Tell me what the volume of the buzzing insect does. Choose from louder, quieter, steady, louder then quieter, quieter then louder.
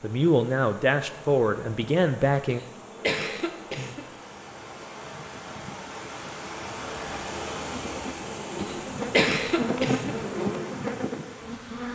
louder.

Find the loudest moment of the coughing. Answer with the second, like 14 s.
9 s.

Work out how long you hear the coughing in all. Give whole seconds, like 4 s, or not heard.
3 s.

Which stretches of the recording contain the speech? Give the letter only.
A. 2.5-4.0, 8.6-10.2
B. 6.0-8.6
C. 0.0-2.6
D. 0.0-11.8
C.